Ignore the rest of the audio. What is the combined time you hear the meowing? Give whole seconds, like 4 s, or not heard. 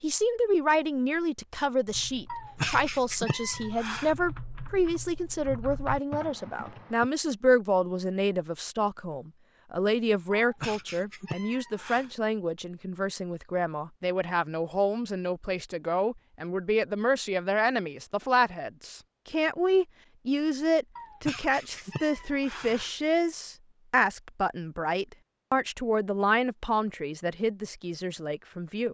6 s.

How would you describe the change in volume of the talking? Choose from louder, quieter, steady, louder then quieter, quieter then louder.
steady.